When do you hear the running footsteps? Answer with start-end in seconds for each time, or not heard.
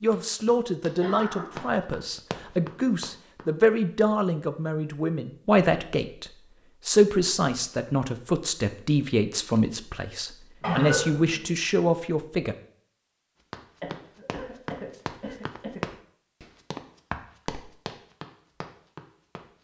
0.0-3.5, 13.5-19.4.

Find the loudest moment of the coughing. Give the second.
11 s.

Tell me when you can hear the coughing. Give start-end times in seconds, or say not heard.
1.0-1.7, 10.6-11.4, 13.8-15.8.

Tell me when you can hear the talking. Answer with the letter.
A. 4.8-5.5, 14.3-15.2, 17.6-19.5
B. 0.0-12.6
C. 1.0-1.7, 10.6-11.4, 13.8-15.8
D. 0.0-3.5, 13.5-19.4
B.